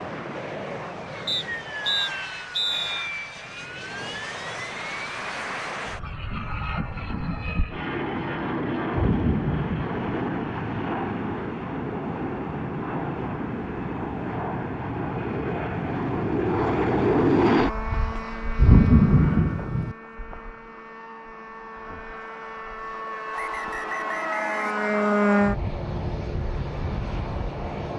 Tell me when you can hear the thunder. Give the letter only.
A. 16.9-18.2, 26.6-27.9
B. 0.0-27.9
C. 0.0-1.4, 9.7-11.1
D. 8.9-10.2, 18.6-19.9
D.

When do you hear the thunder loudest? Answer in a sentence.
The loudest moment of the thunder is at 19 seconds.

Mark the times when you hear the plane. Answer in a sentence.
You can hear the plane from 0.0 to 27.9 s.